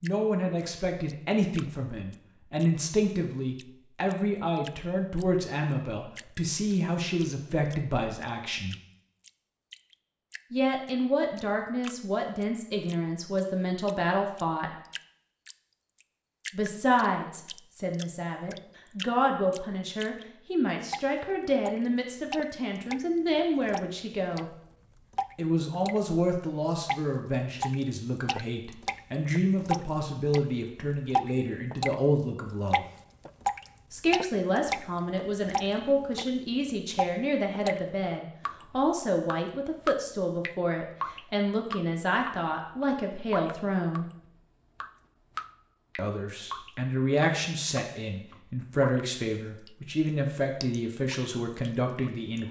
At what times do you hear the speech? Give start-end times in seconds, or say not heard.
0.0-8.8, 10.5-14.8, 16.5-24.4, 25.4-32.9, 33.9-44.0, 46.0-52.4.